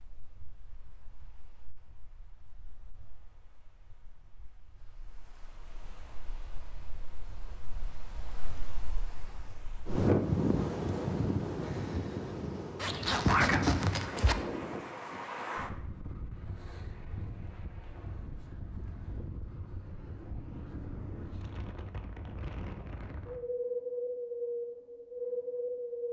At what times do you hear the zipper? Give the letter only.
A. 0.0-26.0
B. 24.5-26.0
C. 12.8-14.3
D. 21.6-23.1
C.